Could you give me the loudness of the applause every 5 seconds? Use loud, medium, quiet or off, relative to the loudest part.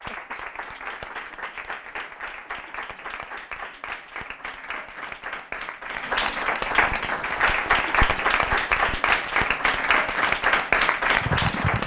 quiet, loud, loud.